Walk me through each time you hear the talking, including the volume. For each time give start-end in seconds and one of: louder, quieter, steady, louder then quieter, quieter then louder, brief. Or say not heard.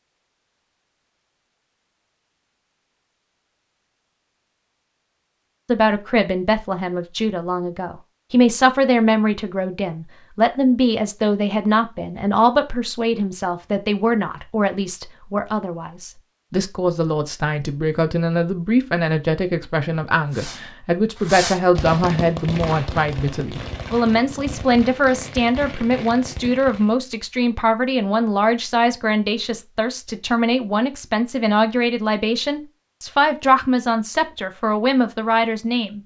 5.7-36.0 steady.